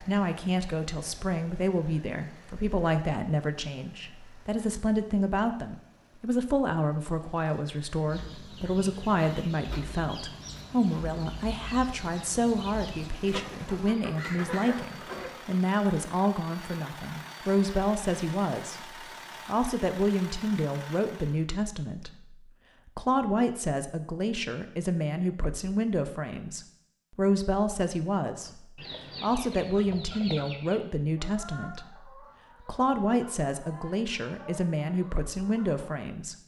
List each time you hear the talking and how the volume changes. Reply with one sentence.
The talking can be heard from 0.0 to 36.4 s, at a steady volume.